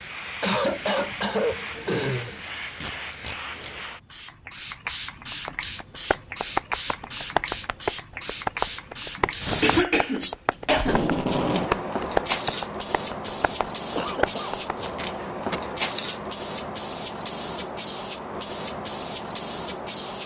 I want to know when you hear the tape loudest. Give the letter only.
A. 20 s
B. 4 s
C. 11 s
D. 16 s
C.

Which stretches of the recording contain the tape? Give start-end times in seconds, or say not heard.
2.8-3.8, 10.8-11.7, 14.8-15.6.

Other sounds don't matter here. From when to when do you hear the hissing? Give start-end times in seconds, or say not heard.
0.0-20.2.